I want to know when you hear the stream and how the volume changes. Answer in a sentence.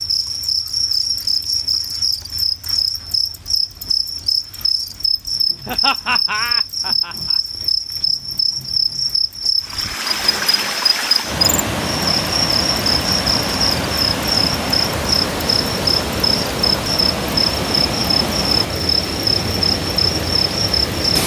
The stream can be heard from 9.6 to 21.2 s, at a steady volume.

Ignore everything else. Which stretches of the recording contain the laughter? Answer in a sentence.
You can hear the laughter from 5.7 to 7.4 s.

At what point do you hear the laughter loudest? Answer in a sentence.
The loudest moment of the laughter is at 6 seconds.